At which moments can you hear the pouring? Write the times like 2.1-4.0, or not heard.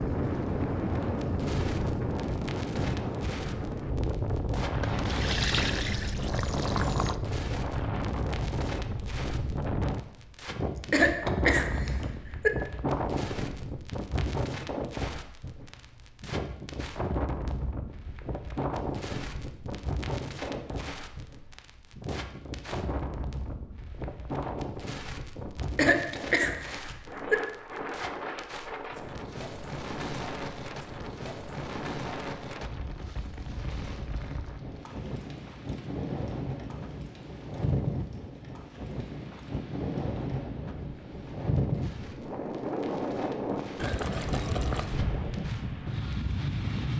4.8-7.2, 43.8-45.0.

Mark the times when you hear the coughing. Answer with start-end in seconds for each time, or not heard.
10.5-12.5, 25.4-27.4.